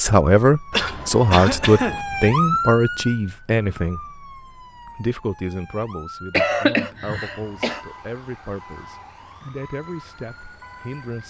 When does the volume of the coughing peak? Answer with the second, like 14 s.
7 s.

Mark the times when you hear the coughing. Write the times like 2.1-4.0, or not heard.
0.7-2.0, 6.3-7.8.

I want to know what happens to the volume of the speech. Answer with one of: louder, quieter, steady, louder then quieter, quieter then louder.
quieter.